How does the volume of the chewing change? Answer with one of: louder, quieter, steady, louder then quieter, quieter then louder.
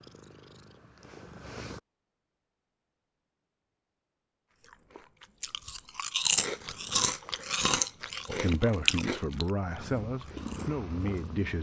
louder then quieter.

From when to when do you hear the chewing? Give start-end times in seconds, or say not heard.
4.6-11.3.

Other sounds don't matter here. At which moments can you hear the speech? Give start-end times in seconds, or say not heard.
8.2-11.5.